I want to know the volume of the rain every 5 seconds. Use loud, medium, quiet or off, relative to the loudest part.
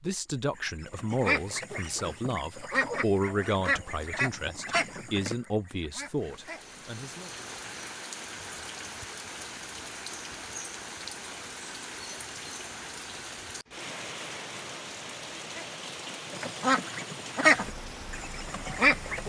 off, loud, loud, loud.